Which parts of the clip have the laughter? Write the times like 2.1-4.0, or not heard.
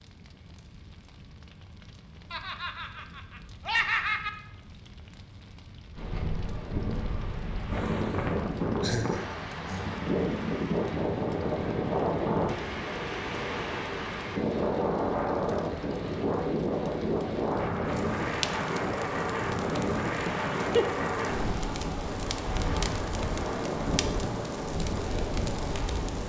2.3-4.3, 8.8-10.0, 20.2-20.9.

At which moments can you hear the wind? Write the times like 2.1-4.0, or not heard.
6.0-26.2.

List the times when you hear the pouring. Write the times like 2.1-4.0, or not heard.
not heard.